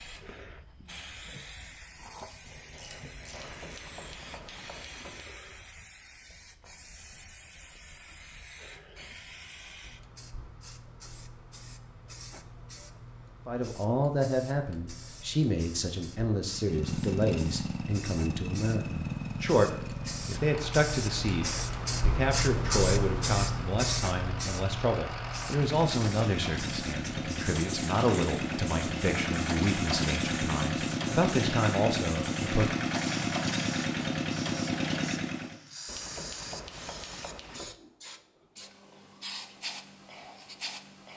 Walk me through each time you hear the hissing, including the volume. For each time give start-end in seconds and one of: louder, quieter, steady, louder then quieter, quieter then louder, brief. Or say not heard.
0.0-41.1 louder then quieter.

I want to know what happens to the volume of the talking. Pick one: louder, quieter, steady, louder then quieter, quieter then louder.
steady.